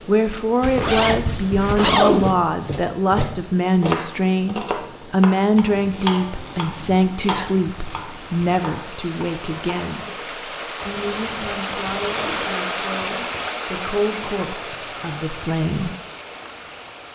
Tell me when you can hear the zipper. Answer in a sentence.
You can hear the zipper from 0.6 to 2.4 s and from 10.8 to 12.5 s.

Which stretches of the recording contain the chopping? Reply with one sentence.
You can hear the chopping from 2.2 to 10.0 s.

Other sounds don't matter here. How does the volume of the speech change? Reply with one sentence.
The loudness of the speech goes down.